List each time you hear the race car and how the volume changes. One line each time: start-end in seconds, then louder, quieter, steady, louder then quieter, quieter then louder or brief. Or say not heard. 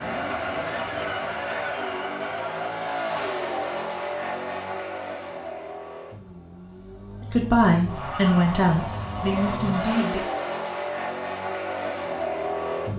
0.0-12.9 quieter then louder.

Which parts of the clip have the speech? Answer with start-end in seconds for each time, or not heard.
7.2-10.2.